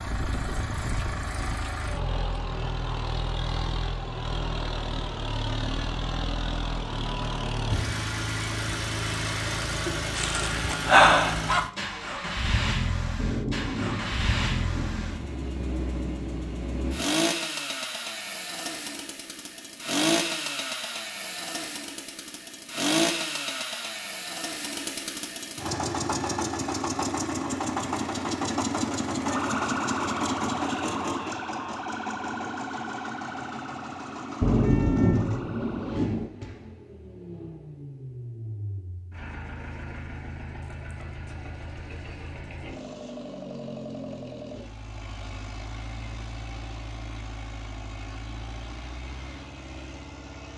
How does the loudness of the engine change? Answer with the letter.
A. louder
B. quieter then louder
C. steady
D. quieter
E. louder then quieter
D.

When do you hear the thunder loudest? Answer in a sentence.
The loudest moment of the thunder is at 35 seconds.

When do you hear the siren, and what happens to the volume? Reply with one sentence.
The siren can be heard from 29.2 to 36.0 s, getting quieter.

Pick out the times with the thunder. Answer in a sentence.
You can hear the thunder from 13.2 to 15.1 s and from 34.4 to 36.3 s.